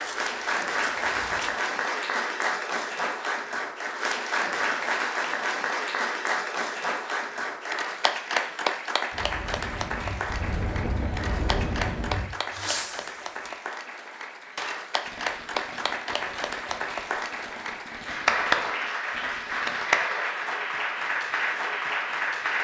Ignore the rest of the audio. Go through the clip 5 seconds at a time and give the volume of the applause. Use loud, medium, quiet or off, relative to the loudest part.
loud, loud, medium, loud, loud.